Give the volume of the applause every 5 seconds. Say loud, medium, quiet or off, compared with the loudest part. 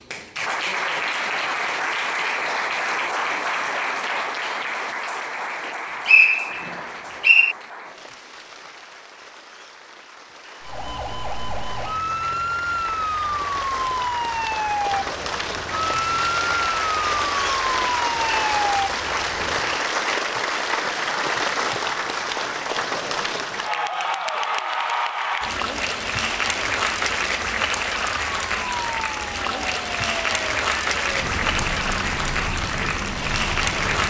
loud, medium, medium, loud, loud, loud, loud.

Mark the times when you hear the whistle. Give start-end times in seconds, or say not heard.
6.0-7.5.